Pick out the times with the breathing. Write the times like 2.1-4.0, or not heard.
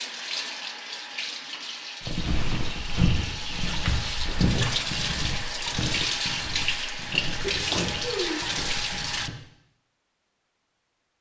not heard.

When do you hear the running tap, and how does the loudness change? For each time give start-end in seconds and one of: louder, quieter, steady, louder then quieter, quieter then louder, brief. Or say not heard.
0.0-9.3 louder.